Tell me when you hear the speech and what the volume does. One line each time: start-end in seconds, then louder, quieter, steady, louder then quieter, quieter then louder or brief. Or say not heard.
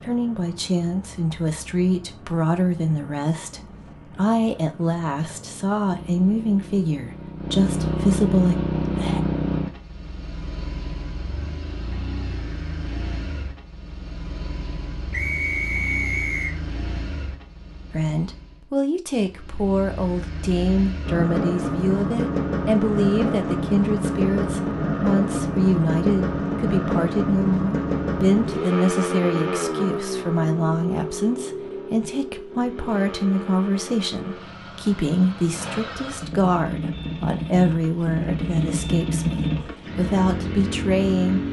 0.0-9.2 steady
17.9-41.4 steady.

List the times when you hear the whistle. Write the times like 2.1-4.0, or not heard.
15.1-16.6.